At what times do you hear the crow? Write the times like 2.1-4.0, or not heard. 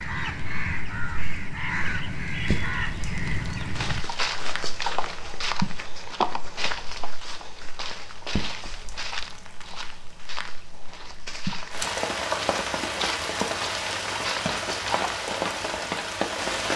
0.0-4.0.